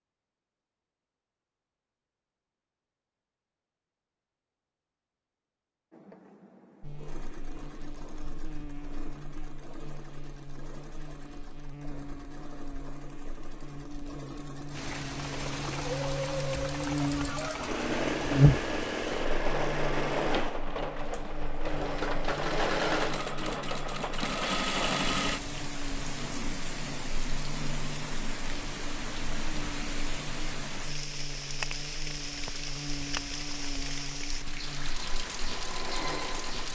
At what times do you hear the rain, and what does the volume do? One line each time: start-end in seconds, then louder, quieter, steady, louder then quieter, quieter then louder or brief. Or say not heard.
14.7-36.7 steady.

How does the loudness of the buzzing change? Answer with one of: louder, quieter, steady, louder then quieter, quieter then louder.
louder then quieter.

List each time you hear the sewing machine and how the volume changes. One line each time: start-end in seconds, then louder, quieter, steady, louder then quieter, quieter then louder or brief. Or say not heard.
5.9-25.4 louder
35.0-36.7 brief.